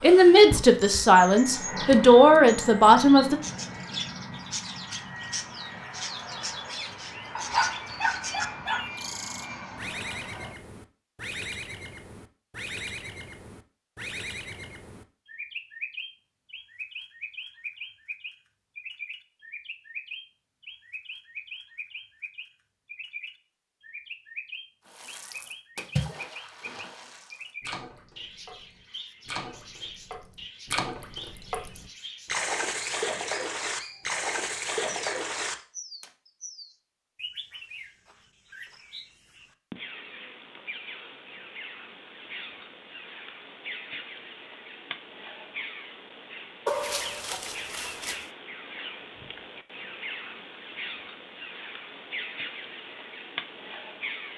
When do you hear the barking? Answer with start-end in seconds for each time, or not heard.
7.3-8.9, 46.6-48.2.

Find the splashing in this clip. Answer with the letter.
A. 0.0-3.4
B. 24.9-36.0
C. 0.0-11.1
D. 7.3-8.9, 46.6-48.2
B.